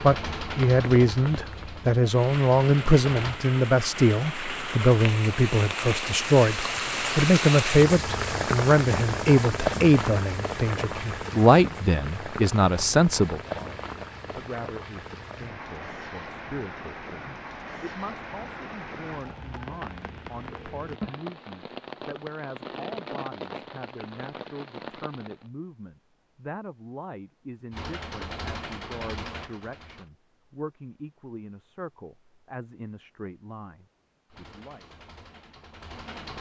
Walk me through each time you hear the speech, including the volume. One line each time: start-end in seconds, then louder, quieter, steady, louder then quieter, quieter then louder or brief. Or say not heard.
0.0-34.9 quieter.